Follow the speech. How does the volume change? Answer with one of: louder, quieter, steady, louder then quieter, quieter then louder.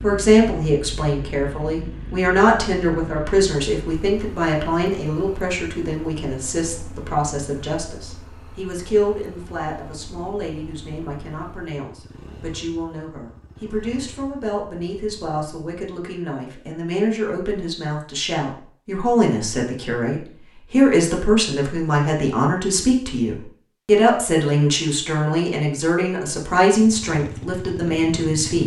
quieter then louder.